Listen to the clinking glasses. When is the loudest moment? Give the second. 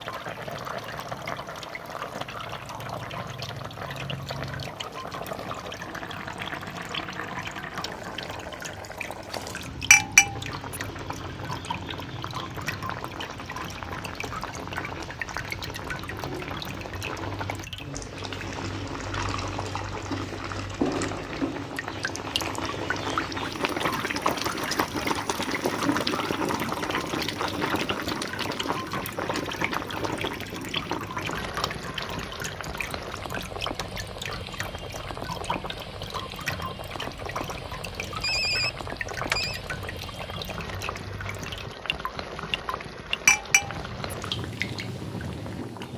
10 s.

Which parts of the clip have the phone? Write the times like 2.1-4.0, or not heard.
38.1-39.6.